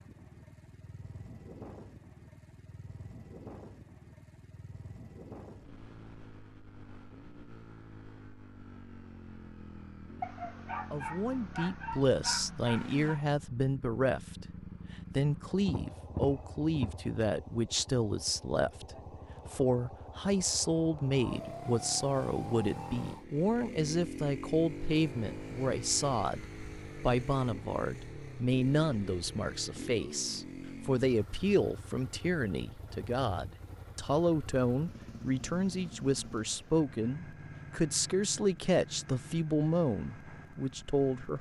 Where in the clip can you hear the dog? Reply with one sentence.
The dog can be heard from 10.2 to 13.2 s.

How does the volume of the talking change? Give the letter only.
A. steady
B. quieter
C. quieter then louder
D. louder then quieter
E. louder
A.